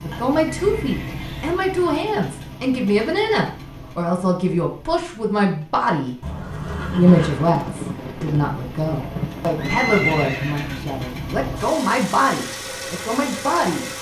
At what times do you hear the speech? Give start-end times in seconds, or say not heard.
0.0-6.2, 7.0-13.9.